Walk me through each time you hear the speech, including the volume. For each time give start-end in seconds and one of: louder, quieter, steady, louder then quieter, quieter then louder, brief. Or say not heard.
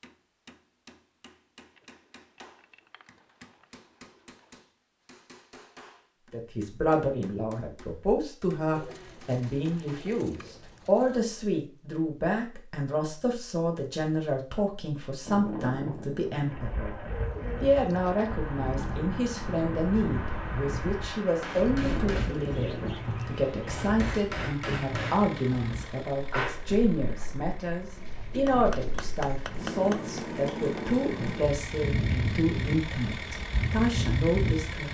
6.3-34.8 steady.